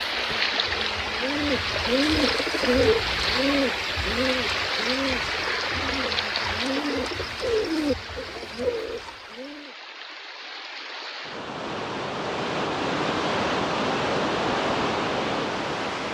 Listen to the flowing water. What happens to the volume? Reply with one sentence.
The loudness of the flowing water goes down, then up.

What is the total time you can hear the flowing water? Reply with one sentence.
The flowing water can be heard for 16 seconds in total.